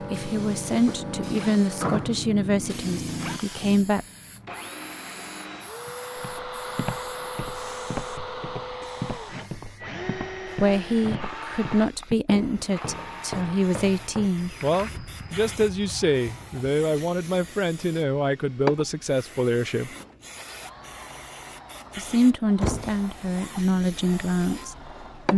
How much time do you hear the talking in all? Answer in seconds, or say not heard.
17 s.